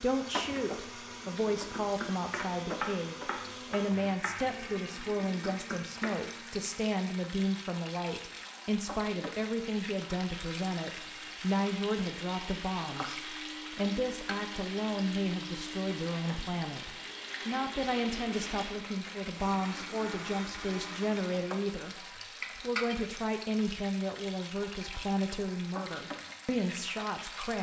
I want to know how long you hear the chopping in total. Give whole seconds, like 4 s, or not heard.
5 s.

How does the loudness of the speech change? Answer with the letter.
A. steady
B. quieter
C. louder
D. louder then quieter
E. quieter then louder
A.